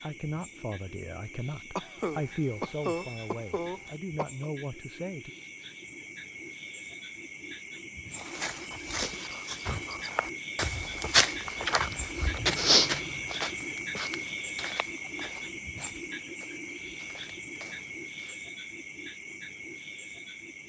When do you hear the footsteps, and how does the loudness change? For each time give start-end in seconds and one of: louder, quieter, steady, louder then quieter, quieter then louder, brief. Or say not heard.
8.2-18.4 louder then quieter.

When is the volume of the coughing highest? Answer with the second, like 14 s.
3 s.